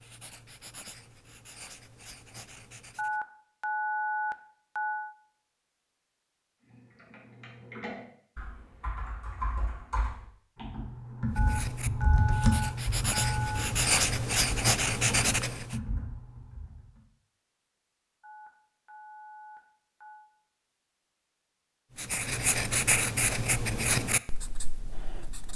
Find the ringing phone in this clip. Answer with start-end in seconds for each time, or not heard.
3.0-5.2, 11.3-13.6, 18.2-20.3.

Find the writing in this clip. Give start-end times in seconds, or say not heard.
0.0-3.2, 11.3-15.8, 21.9-25.5.